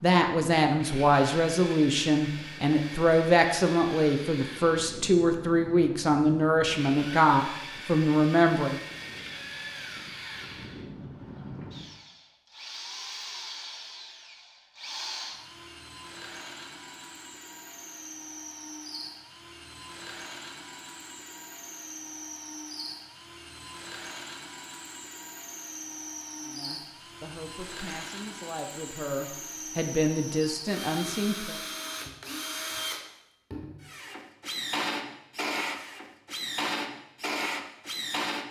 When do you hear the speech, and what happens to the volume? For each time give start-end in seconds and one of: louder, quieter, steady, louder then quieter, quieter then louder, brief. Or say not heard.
0.0-8.8 steady
26.4-31.6 louder.